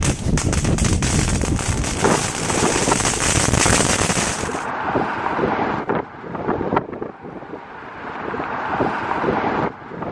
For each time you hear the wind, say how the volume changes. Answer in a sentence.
The wind can be heard from 0.0 to 10.0 s, at a steady volume.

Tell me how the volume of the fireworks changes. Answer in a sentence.
The loudness of the fireworks goes up.